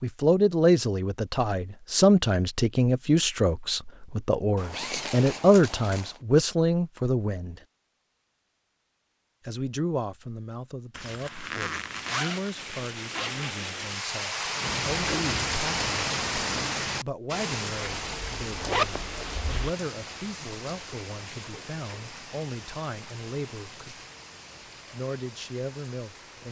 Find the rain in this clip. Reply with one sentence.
You can hear the rain from 11.7 to 26.4 s.